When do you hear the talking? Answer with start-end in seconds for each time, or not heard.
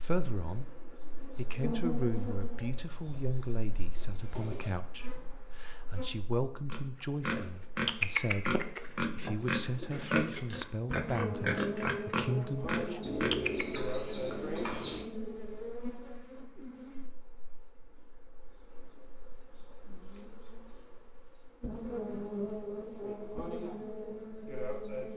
0.0-13.0.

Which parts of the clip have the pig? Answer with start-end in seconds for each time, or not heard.
6.7-13.8.